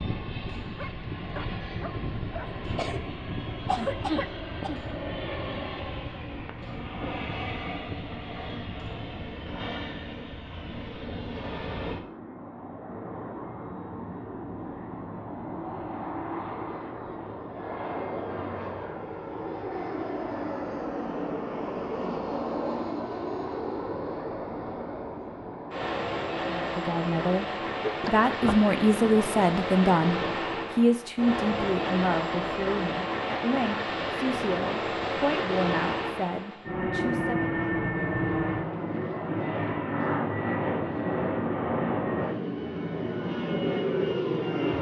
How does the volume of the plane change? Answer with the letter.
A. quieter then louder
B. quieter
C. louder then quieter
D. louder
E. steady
D.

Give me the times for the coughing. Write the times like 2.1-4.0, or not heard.
2.8-4.8, 27.9-28.8.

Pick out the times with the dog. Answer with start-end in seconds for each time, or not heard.
0.6-2.5.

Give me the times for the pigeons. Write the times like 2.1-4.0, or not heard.
not heard.